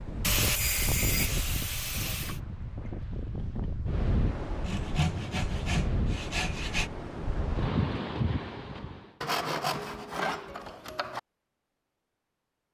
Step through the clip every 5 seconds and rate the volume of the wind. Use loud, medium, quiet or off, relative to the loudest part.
loud, loud, off.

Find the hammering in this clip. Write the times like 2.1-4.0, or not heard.
not heard.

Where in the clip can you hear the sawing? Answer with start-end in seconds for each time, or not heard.
0.2-2.4, 4.7-6.9, 9.2-11.2.